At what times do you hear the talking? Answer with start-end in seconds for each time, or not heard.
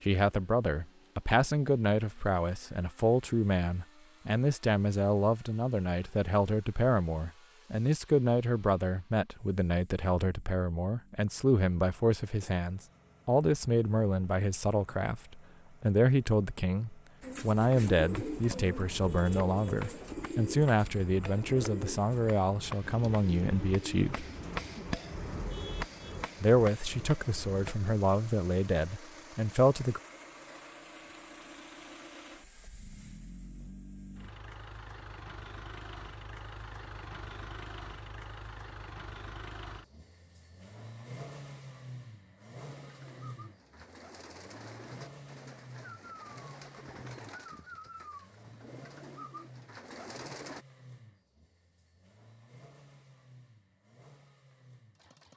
0.0-24.2, 26.4-30.0.